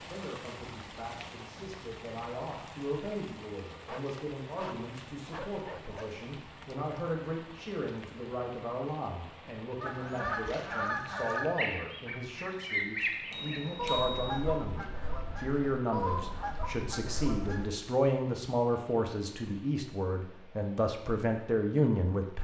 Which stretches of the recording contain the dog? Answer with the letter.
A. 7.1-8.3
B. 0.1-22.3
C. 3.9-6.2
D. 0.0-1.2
C.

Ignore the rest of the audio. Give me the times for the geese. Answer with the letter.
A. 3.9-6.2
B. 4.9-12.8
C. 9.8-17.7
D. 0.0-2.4
C.